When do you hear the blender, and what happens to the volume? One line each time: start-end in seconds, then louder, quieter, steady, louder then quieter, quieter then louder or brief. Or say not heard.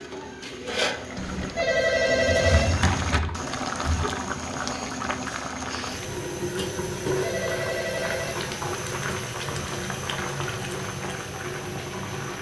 not heard.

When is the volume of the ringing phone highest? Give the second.
2 s.